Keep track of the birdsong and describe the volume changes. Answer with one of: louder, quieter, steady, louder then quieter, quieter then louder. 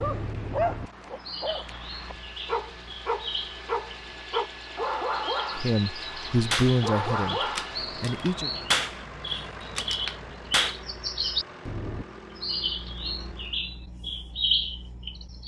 louder.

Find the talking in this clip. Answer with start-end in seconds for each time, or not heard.
5.5-8.5.